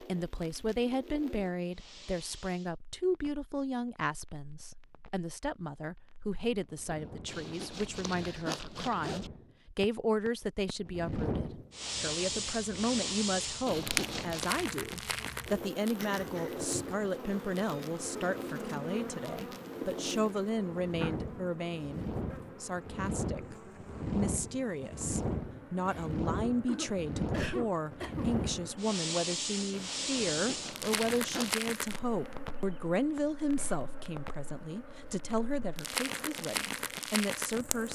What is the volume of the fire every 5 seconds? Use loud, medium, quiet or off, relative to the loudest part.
quiet, quiet, loud, medium, loud, loud, loud, loud.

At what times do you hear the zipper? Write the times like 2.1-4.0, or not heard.
7.2-9.3, 13.7-14.6, 30.1-31.7.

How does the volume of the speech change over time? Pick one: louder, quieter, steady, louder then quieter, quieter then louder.
steady.